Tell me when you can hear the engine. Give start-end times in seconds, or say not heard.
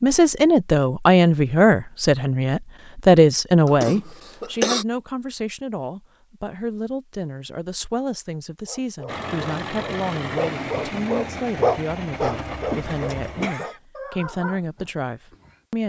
9.1-13.5.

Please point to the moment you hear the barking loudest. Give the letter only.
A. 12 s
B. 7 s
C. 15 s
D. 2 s
A.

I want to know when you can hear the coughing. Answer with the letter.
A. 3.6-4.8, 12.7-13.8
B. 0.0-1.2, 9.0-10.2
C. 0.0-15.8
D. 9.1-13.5
A.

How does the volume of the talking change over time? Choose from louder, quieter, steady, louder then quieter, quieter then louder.
quieter.